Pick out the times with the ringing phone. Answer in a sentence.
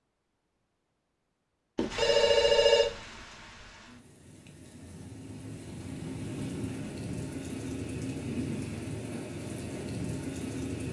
The ringing phone can be heard from 1.8 to 2.9 s.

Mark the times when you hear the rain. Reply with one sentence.
You can hear the rain from 1.9 to 10.8 s.